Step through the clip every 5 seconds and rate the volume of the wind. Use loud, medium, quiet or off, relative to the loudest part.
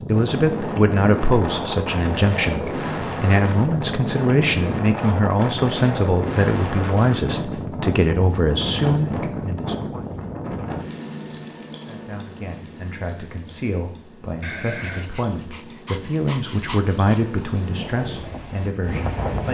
loud, loud, medium, medium.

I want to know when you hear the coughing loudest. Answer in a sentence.
The volume of the coughing peaks at 15 seconds.